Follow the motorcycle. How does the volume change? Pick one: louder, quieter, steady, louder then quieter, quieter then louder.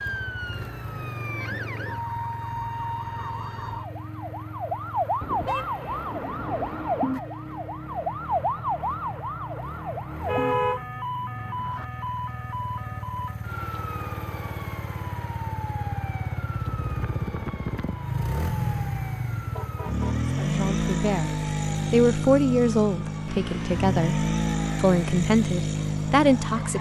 louder.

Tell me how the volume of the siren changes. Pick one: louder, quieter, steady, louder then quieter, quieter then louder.
quieter.